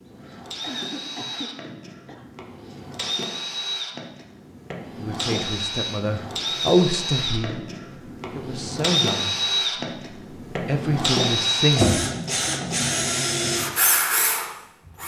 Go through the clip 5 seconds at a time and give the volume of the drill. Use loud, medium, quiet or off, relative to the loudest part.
medium, loud, loud.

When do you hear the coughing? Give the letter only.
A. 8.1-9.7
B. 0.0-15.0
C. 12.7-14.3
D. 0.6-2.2
D.